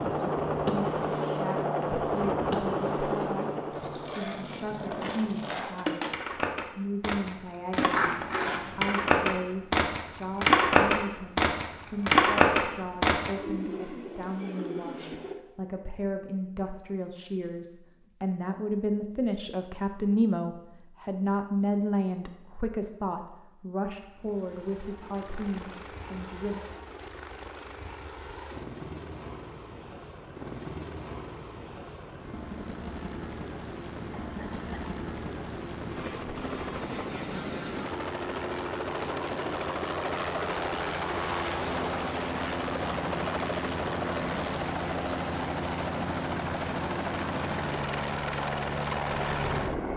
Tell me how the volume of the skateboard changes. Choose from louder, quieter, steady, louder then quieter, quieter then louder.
louder.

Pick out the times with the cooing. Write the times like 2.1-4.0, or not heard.
13.3-15.3.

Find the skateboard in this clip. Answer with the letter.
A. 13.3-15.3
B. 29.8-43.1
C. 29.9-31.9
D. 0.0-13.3
D.